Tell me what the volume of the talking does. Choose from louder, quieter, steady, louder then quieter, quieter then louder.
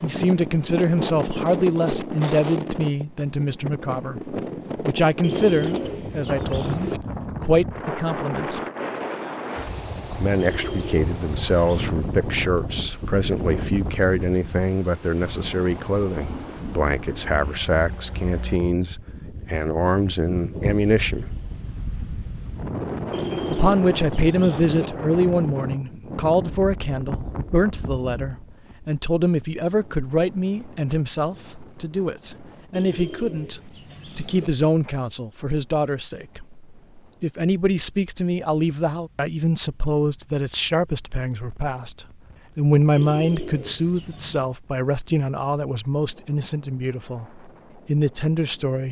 steady.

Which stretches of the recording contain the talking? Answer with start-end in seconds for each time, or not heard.
0.0-8.6, 10.2-21.2, 23.4-48.8.